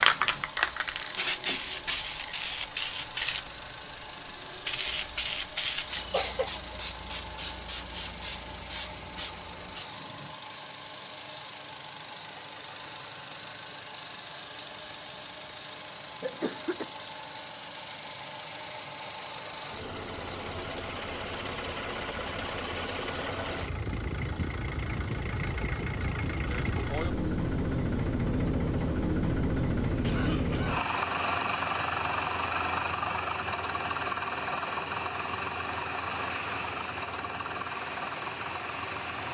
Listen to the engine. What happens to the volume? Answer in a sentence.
The loudness of the engine goes up.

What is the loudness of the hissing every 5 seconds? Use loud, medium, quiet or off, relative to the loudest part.
loud, medium, medium, medium, quiet, quiet, quiet, medium.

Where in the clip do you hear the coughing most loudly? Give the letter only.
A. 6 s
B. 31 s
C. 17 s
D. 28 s
A.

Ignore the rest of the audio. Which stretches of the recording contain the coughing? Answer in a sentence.
The coughing can be heard from 6.0 to 6.6 s, from 16.2 to 16.9 s and from 30.0 to 30.9 s.